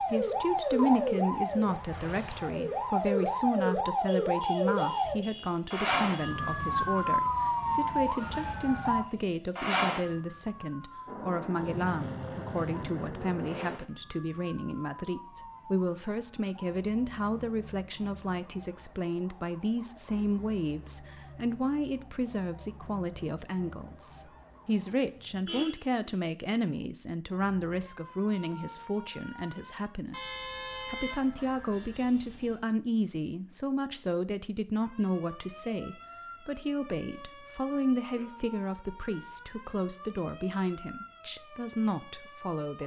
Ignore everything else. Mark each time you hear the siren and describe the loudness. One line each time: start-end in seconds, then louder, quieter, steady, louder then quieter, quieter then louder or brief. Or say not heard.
0.0-25.1 quieter
27.2-30.0 brief
34.7-42.8 steady.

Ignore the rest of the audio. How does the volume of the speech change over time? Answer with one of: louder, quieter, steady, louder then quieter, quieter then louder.
steady.